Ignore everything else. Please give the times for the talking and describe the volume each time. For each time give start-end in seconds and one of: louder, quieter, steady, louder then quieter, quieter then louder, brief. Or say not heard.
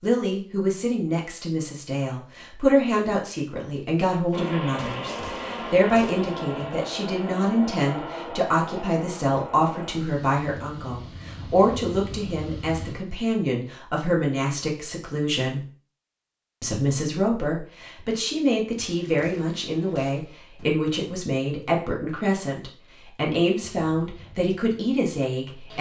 0.0-15.7 steady
16.6-25.7 steady.